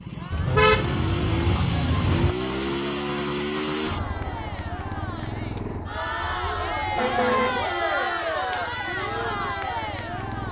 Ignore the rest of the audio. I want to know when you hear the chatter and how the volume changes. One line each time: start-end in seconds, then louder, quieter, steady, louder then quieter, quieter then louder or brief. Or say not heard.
0.1-10.4 louder.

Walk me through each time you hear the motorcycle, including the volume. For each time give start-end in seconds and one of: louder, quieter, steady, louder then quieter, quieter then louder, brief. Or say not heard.
0.0-10.4 quieter.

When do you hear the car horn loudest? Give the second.
1 s.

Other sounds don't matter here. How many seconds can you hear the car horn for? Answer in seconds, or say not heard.
3 s.